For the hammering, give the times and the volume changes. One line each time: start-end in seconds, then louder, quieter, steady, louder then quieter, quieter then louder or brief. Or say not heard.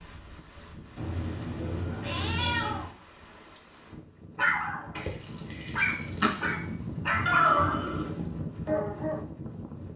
not heard.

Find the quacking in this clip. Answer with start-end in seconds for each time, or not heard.
5.0-6.5.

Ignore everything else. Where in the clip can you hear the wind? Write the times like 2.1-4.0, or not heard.
0.0-9.9.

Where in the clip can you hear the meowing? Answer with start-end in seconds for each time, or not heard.
0.9-2.9, 7.2-8.2.